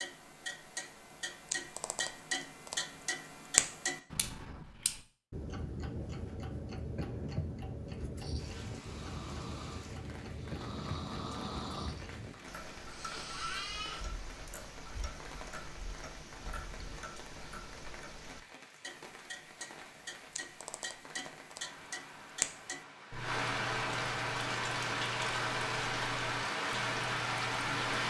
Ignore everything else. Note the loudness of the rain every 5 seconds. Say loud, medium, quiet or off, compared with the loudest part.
off, quiet, quiet, quiet, medium, loud.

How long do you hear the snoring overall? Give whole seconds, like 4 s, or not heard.
5 s.